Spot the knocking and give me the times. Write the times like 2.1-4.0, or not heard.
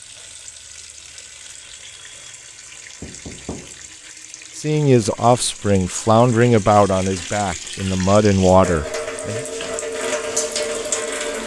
3.0-4.0.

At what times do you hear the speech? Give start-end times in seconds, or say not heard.
4.5-9.4.